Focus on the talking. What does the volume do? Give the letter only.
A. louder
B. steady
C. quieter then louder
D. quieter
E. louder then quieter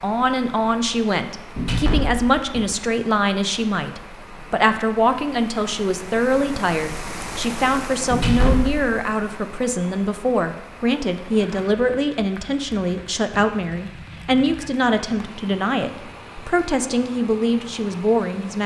B.